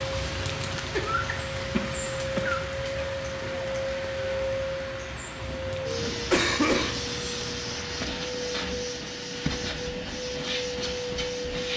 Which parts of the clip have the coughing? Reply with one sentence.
The coughing can be heard from 0.9 to 2.6 s and from 6.3 to 6.9 s.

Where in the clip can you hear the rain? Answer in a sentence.
You can hear the rain from 0.0 to 8.1 s.